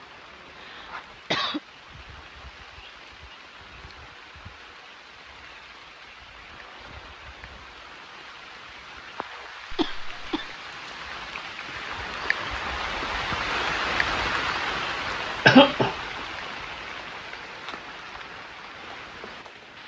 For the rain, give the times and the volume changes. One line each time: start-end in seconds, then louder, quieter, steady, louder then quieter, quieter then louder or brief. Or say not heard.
0.0-19.8 louder then quieter.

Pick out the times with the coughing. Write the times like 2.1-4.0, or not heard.
0.6-1.6, 9.7-10.5, 15.4-15.9.